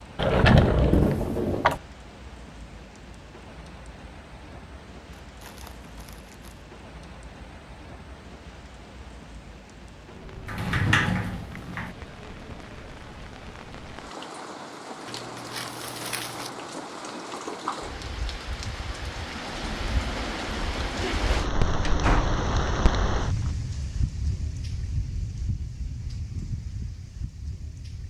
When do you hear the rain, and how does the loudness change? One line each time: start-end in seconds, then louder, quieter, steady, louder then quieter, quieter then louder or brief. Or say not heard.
0.0-28.0 louder.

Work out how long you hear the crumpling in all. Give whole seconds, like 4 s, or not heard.
3 s.